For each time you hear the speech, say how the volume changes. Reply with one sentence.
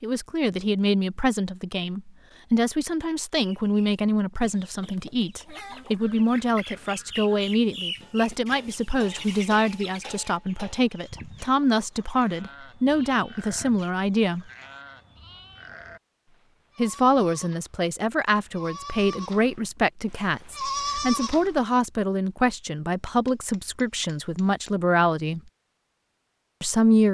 The speech can be heard from 0.0 to 14.4 s, at a steady volume; from 16.8 to 25.4 s, at a steady volume; and briefly from 26.6 to 27.1 s.